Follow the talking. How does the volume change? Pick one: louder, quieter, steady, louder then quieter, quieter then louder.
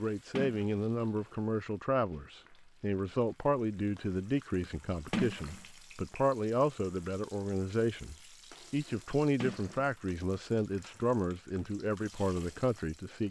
steady.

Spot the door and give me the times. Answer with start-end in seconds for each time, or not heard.
0.3-0.8, 5.1-5.6, 9.4-9.8.